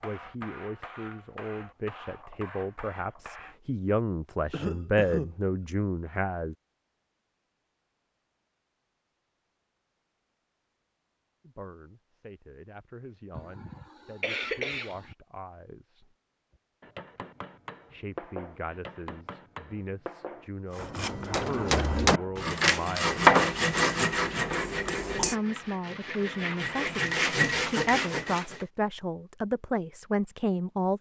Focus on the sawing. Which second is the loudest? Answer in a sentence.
The volume of the sawing peaks at 23 seconds.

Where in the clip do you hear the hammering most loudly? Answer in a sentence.
The loudest moment of the hammering is at 25 seconds.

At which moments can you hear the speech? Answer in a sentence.
You can hear the speech from 0.0 to 6.5 s, from 11.4 to 16.1 s, from 17.9 to 23.2 s and from 25.1 to 30.9 s.